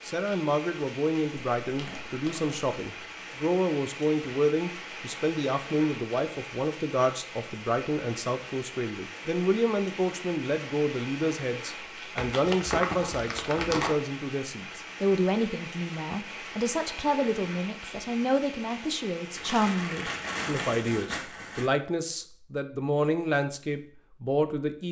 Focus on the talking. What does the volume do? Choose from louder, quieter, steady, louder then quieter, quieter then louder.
steady.